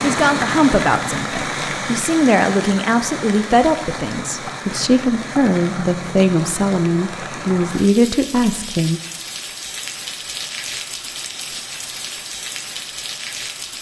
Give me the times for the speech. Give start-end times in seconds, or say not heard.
0.0-9.0.